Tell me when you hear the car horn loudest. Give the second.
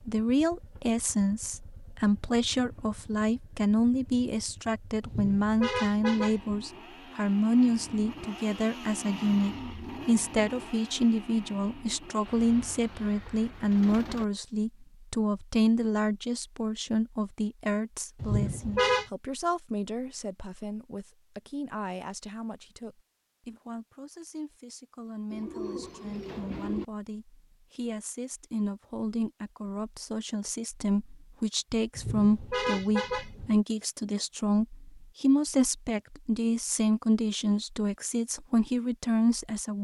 19 s.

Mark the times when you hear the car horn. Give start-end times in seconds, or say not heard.
5.0-6.5, 18.2-19.1, 31.9-33.5.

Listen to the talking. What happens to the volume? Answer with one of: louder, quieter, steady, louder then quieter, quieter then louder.
quieter then louder.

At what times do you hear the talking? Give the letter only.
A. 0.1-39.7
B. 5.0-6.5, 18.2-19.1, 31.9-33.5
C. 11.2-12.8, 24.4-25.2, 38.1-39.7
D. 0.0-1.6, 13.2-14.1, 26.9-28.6
A.